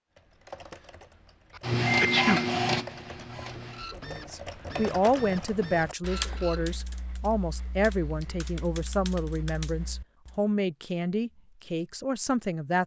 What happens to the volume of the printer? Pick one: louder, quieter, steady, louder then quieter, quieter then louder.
quieter.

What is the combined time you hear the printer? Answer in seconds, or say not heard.
5 s.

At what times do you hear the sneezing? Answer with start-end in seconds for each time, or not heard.
1.6-2.4.